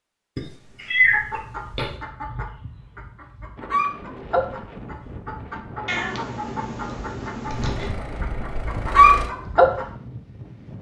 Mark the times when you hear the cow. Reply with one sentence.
The cow can't be heard in this clip.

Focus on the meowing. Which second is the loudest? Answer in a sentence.
The volume of the meowing peaks at 1 second.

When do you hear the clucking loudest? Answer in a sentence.
The volume of the clucking peaks at 9 seconds.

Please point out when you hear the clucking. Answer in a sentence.
The clucking can be heard from 1.1 to 9.8 s.